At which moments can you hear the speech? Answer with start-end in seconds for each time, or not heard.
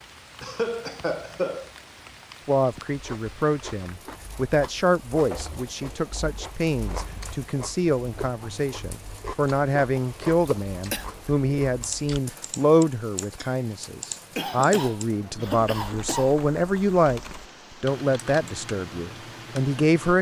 2.5-20.1.